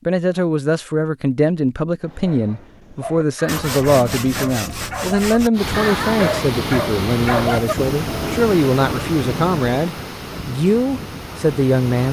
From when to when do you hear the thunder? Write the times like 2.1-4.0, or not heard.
7.8-9.7.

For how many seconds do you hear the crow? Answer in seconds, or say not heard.
not heard.